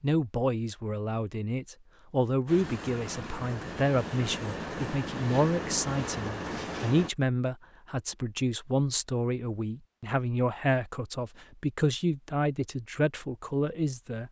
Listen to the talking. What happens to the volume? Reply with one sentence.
The volume of the talking stays about the same.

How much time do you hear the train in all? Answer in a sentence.
You can hear the train for 5 seconds altogether.